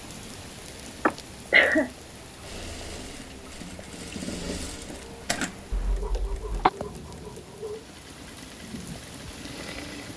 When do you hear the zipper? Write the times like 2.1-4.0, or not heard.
not heard.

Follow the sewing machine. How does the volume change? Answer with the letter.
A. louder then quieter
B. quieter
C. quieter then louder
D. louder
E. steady
A.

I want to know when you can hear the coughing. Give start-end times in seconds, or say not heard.
1.1-1.9, 5.7-6.7.